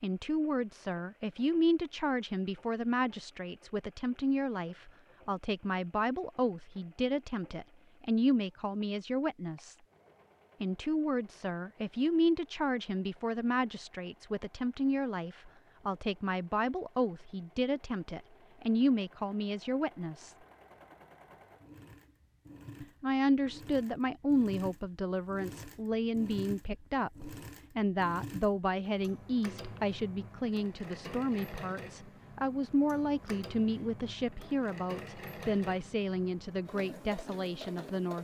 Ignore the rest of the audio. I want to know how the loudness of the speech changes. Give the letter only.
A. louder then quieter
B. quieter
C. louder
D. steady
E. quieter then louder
D.